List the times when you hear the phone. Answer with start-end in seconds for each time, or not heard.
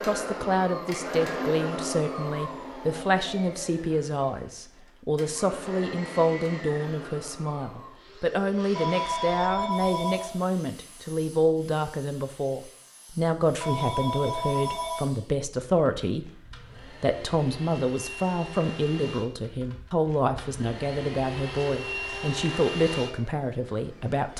8.8-10.4, 13.6-15.1.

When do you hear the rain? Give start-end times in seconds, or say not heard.
not heard.